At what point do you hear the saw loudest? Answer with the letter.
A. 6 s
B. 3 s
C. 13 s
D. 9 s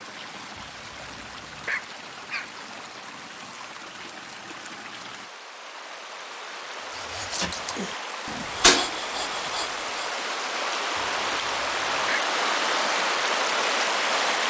D.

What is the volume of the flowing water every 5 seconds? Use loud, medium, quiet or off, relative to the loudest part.
quiet, medium, loud.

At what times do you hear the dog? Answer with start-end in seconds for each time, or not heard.
0.6-2.5, 10.9-12.3.